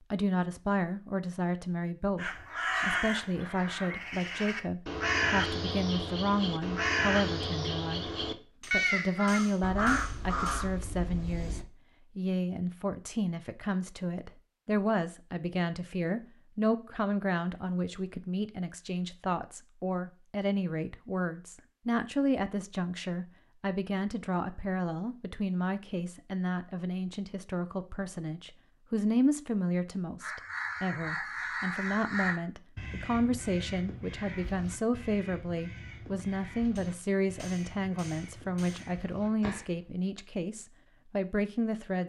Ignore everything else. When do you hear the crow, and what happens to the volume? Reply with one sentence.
The crow can be heard from 2.1 to 11.7 s, at a steady volume; and from 30.2 to 39.9 s, getting quieter.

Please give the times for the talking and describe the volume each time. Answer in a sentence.
You can hear the talking from 0.1 to 8.1 s, at a steady volume; and from 8.7 to 42.0 s, at a steady volume.